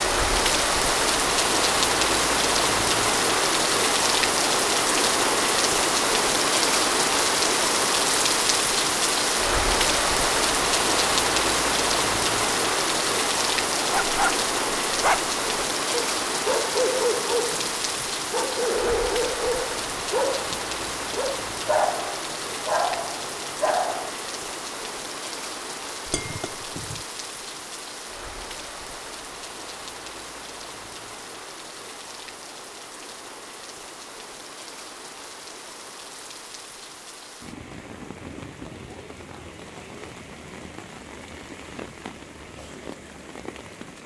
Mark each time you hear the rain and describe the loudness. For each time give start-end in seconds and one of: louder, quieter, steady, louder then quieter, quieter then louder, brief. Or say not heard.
0.0-44.0 quieter.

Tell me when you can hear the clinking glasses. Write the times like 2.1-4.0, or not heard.
26.1-27.0.